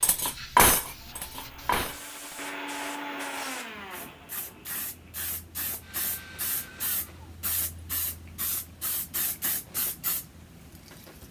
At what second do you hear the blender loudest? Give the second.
3 s.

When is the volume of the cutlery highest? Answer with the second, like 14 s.
1 s.